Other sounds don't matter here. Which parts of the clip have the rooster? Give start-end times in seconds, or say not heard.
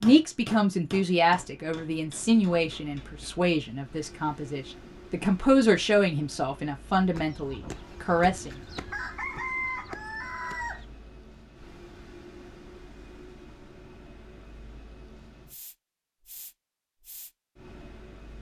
7.1-10.8.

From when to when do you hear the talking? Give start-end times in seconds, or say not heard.
0.0-8.5.